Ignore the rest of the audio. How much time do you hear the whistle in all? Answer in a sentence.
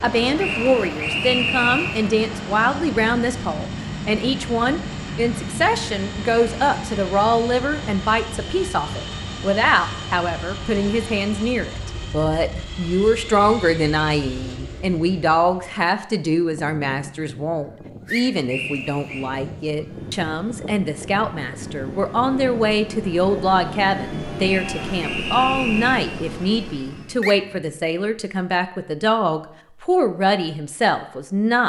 The whistle can be heard for 4 seconds in total.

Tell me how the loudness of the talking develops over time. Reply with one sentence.
The volume of the talking stays about the same.